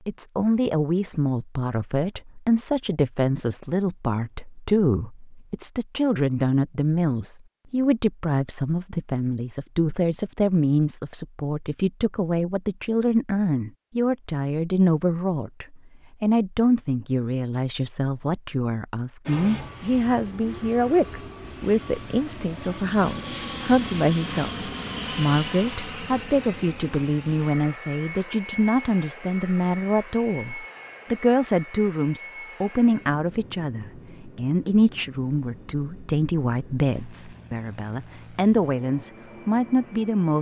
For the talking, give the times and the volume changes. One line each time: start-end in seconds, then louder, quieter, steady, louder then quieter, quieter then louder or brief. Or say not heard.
0.1-40.3 steady.